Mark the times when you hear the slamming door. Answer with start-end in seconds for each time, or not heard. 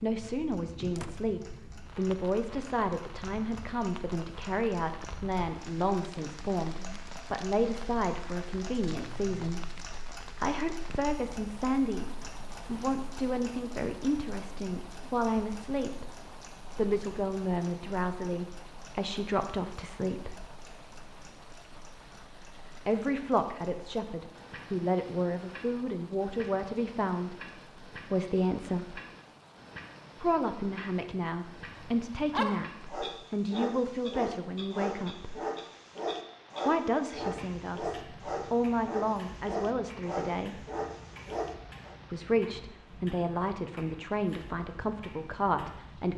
0.9-1.4.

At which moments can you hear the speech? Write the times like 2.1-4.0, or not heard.
0.0-9.7, 10.3-20.5, 22.9-29.0, 30.2-35.4, 36.6-40.6, 42.1-46.1.